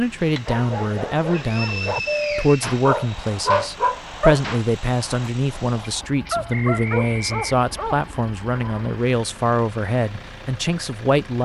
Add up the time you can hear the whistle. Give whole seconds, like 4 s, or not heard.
3 s.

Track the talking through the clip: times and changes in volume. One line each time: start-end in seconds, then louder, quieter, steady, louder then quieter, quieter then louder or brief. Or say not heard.
0.0-11.4 steady.